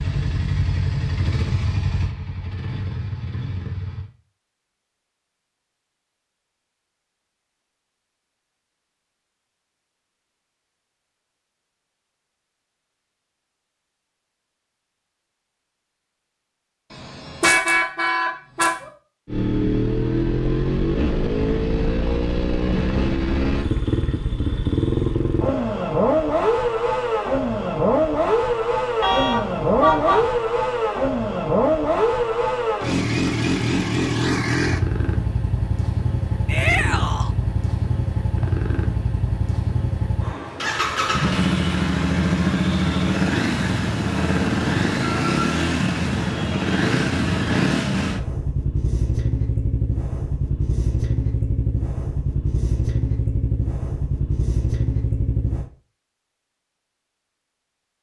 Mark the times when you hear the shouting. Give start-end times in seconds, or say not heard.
36.5-37.4.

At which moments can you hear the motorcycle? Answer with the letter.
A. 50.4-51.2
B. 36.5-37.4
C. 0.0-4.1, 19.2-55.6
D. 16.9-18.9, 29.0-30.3
C.